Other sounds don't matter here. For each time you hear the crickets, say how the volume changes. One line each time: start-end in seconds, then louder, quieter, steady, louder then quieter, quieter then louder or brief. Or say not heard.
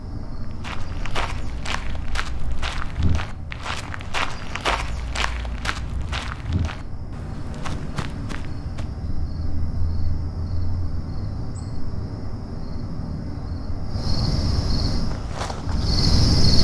0.0-16.5 louder.